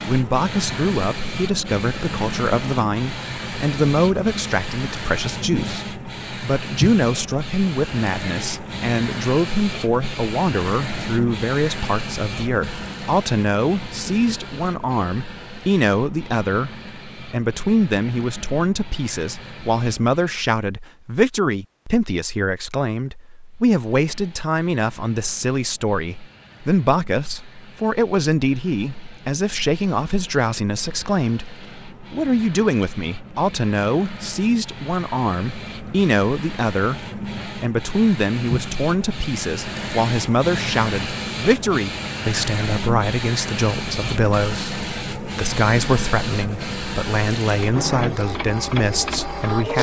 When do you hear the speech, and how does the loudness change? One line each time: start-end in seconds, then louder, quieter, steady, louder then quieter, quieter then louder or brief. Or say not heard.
0.1-49.7 steady.